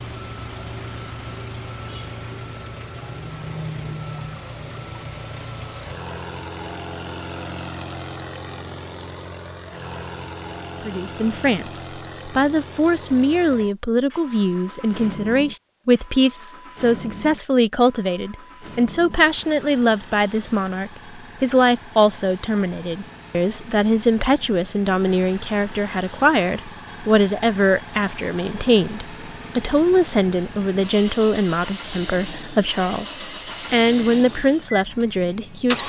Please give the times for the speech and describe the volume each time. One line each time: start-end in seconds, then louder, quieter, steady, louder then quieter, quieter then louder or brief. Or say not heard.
10.8-35.8 steady.